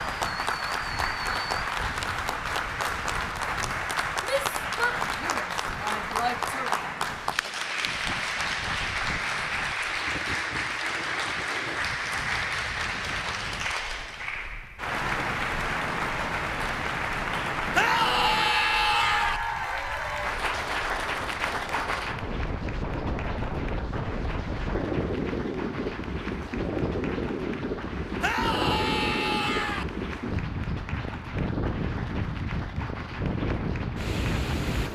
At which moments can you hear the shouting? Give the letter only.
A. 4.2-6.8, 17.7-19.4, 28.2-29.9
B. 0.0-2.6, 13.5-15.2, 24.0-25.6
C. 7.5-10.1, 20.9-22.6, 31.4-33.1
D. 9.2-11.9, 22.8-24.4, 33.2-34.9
A.